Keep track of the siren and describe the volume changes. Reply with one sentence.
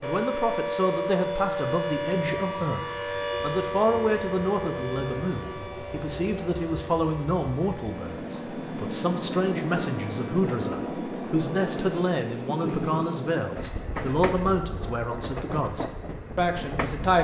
The loudness of the siren goes down.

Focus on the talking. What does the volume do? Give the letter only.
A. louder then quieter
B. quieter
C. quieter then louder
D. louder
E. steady
E.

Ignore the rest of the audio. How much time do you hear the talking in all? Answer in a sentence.
The talking can be heard for 17 seconds in total.